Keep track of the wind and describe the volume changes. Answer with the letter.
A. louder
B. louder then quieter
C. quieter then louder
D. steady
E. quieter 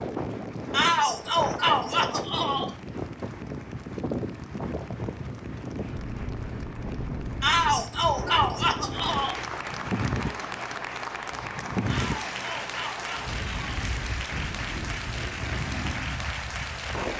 D.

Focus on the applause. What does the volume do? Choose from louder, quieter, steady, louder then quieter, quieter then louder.
louder.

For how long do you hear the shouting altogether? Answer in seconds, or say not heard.
6 s.